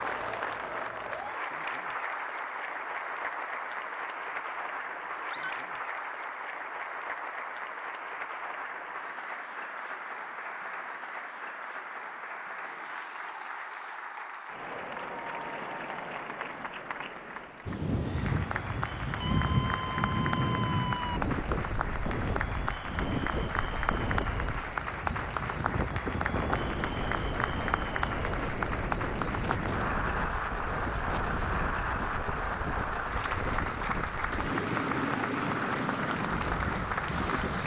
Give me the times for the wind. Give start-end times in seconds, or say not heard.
17.6-37.6.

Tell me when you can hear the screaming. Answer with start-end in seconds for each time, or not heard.
5.2-5.7, 19.2-21.2.